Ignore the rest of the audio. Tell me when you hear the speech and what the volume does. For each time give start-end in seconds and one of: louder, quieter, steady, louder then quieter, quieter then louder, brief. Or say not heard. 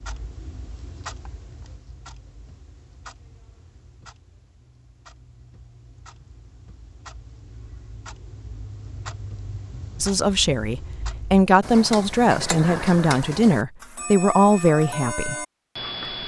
10.0-15.3 louder.